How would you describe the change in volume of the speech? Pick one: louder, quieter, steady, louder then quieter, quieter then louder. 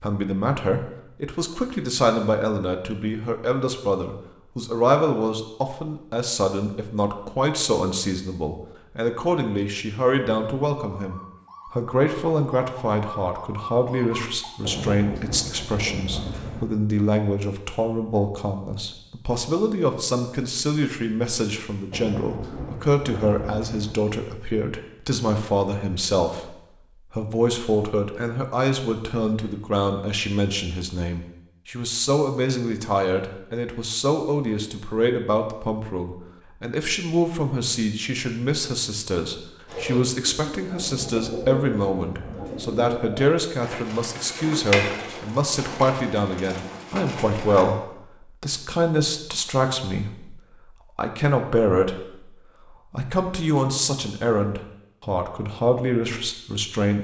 steady.